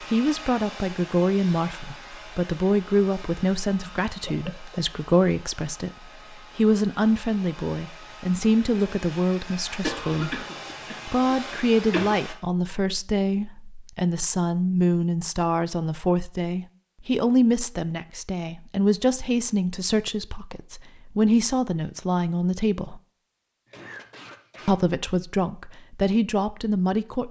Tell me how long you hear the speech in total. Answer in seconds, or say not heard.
24 s.